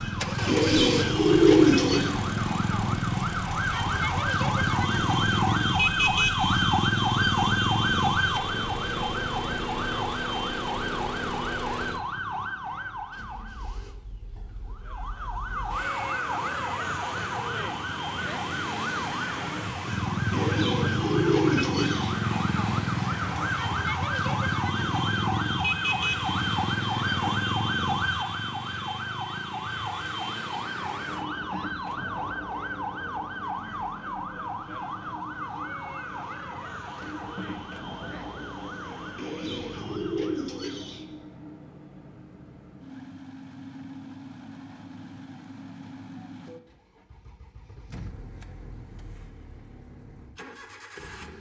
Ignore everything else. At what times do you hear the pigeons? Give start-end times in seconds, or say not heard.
0.5-2.1, 20.3-22.1, 39.1-41.0.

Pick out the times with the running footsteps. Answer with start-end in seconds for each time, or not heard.
not heard.